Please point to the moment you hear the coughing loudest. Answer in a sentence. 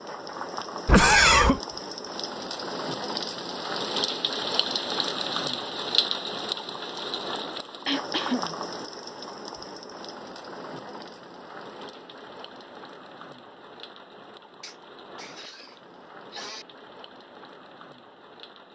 The loudest moment of the coughing is at 1 second.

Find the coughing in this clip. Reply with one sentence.
The coughing can be heard from 0.8 to 1.6 s, from 7.8 to 8.6 s and from 14.6 to 16.6 s.